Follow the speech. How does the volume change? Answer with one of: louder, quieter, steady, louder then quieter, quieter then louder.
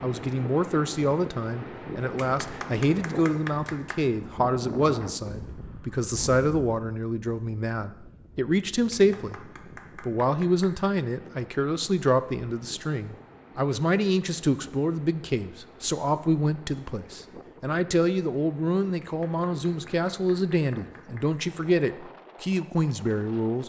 steady.